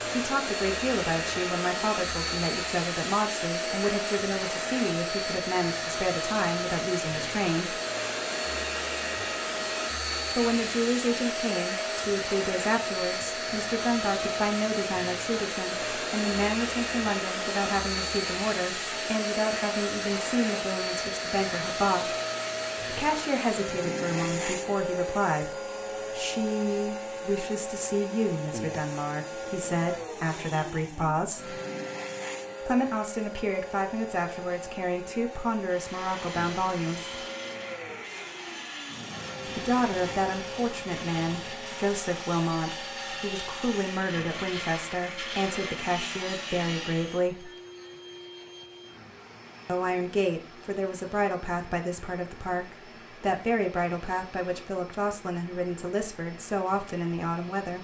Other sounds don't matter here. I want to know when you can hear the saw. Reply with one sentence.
The saw can be heard from 35.6 to 47.3 s.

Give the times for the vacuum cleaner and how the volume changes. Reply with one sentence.
You can hear the vacuum cleaner from 0.0 to 57.7 s, getting quieter.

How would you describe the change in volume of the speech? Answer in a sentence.
The volume of the speech stays about the same.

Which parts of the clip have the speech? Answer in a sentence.
The speech can be heard from 0.1 to 7.8 s, from 10.3 to 22.1 s, from 22.8 to 31.6 s, from 32.6 to 37.2 s, from 39.5 to 47.5 s and from 49.6 to 57.7 s.